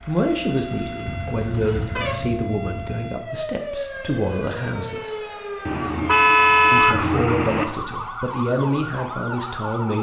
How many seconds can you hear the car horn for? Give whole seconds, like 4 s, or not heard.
4 s.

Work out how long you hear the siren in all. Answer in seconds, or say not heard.
10 s.